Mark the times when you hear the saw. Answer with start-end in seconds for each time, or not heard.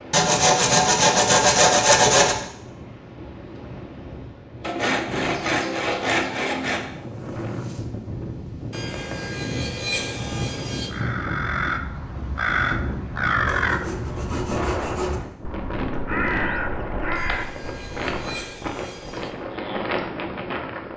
0.1-2.4, 4.6-6.8, 8.7-10.9, 13.6-15.2, 17.1-19.3.